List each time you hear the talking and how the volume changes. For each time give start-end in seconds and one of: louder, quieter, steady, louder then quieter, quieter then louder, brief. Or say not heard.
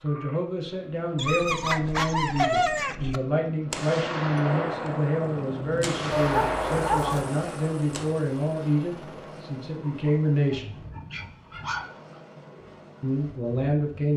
0.0-10.8 steady
13.0-14.1 brief.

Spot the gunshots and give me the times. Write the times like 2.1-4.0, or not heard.
3.7-8.1.